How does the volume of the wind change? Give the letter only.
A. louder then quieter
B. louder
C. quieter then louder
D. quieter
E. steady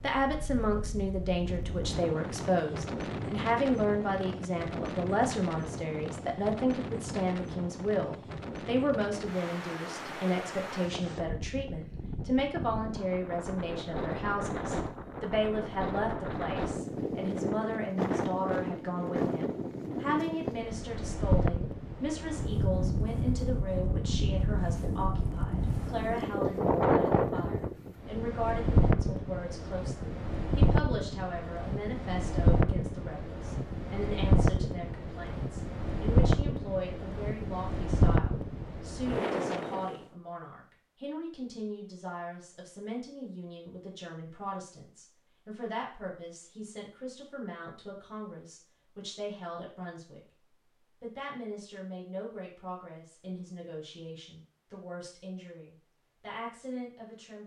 B.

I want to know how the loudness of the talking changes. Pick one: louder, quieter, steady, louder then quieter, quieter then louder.
quieter.